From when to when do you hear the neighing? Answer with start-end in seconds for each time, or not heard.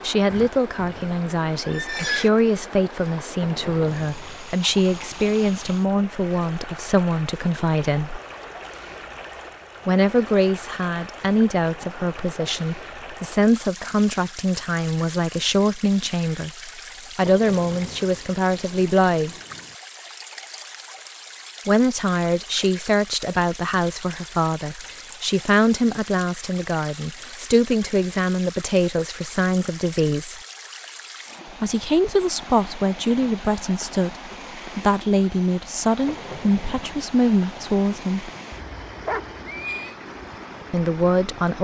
0.3-2.3, 38.5-40.0.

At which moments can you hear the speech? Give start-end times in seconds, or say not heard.
0.0-8.2, 9.8-19.4, 21.6-30.4, 31.6-38.3, 40.7-41.5.